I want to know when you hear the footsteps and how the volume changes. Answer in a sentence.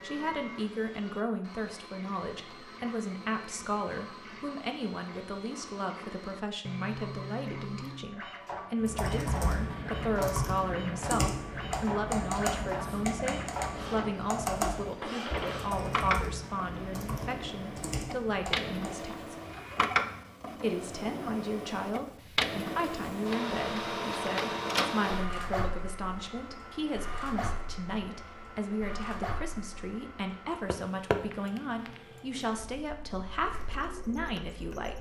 You can't hear the footsteps here.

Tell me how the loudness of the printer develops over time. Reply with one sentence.
The loudness of the printer goes up, then down.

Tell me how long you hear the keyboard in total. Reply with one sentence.
You can hear the keyboard for 10 seconds altogether.